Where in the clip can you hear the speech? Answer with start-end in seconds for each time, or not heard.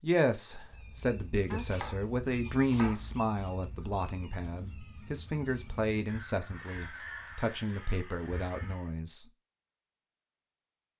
0.0-9.2.